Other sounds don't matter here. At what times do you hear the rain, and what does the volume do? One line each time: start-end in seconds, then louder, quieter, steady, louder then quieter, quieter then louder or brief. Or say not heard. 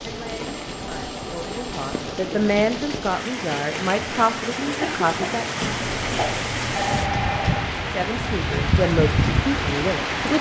0.0-10.3 louder.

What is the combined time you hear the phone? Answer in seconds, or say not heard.
4 s.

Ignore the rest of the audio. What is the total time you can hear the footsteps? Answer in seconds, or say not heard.
not heard.